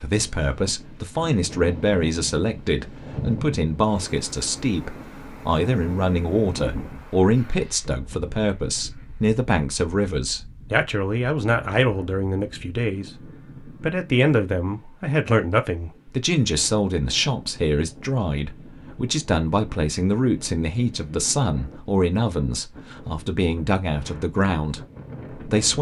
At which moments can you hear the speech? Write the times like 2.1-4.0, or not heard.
0.0-13.1, 13.8-25.7.